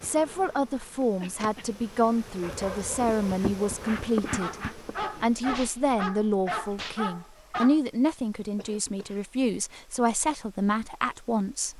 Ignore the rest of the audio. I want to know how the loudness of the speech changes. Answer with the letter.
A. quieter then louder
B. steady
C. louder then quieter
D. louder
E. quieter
B.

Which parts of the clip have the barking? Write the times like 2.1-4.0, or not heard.
2.4-7.8.